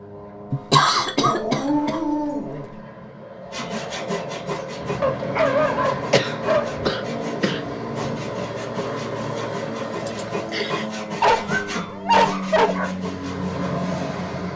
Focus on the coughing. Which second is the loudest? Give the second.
1 s.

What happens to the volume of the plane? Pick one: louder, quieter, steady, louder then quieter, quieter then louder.
louder.